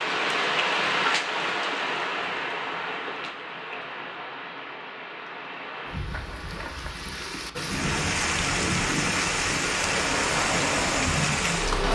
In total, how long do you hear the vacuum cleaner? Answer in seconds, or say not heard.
2 s.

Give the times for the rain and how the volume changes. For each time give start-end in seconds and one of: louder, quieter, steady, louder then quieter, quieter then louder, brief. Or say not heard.
0.0-11.8 quieter then louder.